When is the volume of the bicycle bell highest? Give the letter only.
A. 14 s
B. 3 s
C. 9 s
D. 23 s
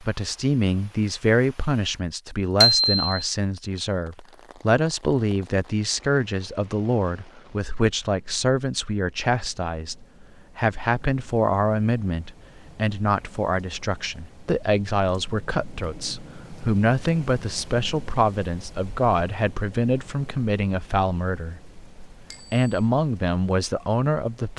B.